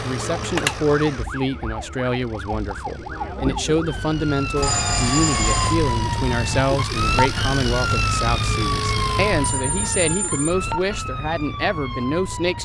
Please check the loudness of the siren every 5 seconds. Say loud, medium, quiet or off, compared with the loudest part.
medium, loud, medium.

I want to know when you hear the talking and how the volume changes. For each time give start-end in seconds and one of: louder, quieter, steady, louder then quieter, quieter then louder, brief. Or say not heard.
0.0-12.6 steady.